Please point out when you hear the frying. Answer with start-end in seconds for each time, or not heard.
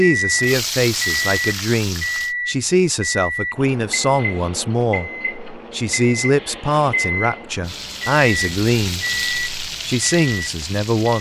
0.1-2.4, 7.6-11.1.